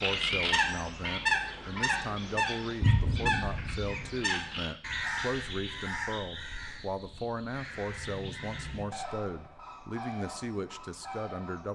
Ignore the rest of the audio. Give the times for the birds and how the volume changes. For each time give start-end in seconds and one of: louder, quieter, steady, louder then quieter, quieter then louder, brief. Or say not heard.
0.0-11.6 quieter.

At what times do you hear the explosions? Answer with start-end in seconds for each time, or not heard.
2.8-4.2.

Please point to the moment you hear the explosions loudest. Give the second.
3 s.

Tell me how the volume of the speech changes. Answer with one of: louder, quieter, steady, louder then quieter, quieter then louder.
steady.